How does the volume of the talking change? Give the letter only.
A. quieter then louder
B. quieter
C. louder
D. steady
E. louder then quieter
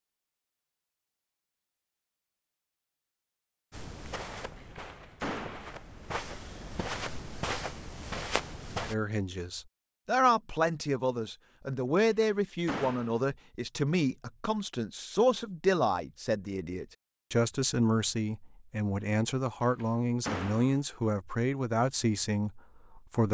D.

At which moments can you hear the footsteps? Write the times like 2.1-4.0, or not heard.
3.7-8.9.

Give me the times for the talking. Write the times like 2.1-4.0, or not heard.
8.8-23.2.